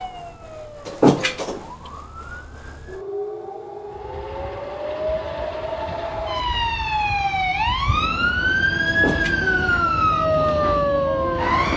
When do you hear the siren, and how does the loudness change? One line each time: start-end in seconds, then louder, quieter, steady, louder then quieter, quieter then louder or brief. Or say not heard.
0.0-11.7 louder.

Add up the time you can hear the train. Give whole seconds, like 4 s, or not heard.
8 s.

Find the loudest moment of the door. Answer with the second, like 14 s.
1 s.